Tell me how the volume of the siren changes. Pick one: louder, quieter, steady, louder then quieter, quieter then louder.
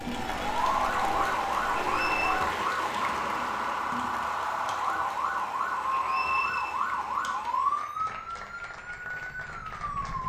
quieter.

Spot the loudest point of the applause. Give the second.
1 s.